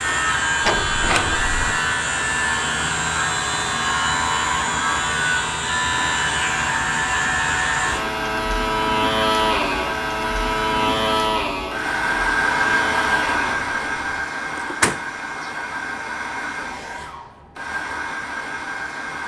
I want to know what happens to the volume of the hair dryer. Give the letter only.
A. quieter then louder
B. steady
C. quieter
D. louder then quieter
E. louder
D.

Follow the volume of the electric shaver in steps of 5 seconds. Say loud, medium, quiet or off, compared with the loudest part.
loud, loud, loud, off.